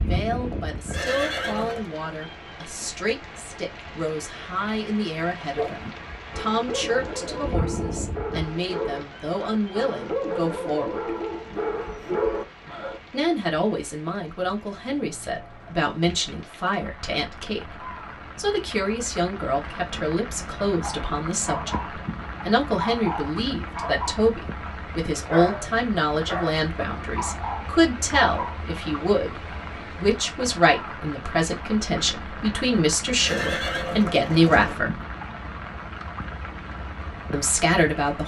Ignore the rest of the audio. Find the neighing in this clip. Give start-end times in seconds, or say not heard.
0.9-1.9, 33.2-34.8.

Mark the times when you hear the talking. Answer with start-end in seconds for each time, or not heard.
0.0-11.2, 13.1-35.0, 37.3-38.2.